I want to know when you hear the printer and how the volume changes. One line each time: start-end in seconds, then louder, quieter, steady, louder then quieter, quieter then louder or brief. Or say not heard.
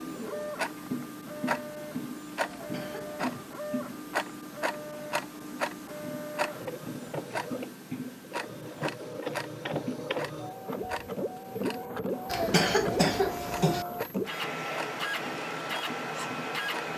0.0-16.9 louder.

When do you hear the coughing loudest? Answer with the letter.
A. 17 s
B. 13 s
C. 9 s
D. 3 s
B.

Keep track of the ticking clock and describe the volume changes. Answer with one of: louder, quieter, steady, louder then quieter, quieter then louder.
quieter.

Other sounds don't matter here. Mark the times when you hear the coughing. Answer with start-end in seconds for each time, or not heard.
2.5-3.2, 12.2-13.8.